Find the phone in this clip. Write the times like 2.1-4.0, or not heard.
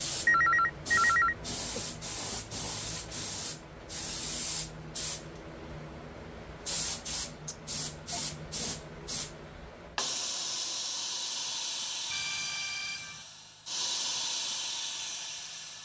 0.2-1.8, 7.5-8.2, 12.1-13.2.